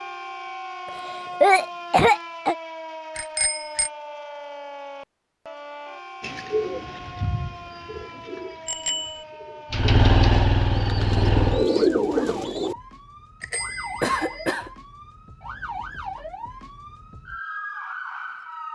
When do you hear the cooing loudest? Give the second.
12 s.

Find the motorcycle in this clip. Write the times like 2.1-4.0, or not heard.
9.7-11.7.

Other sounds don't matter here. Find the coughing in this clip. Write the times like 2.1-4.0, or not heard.
0.8-2.5, 14.0-14.7.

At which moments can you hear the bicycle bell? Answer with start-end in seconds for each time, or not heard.
3.1-3.9, 8.7-9.2, 13.4-14.6.